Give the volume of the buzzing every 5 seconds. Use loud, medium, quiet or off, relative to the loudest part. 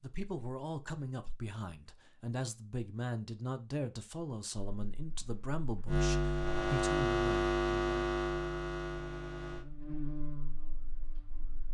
off, loud, quiet.